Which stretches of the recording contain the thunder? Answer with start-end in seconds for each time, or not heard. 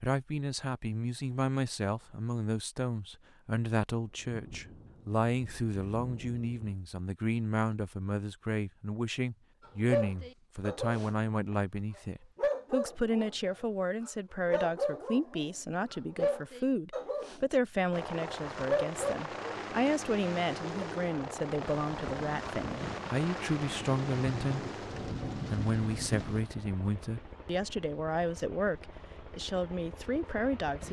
4.0-6.8, 21.6-26.5.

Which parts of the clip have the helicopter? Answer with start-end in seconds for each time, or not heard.
17.9-30.8.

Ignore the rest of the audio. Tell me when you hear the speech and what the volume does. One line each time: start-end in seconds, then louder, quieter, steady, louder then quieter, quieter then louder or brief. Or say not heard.
0.0-24.6 steady
25.5-30.8 steady.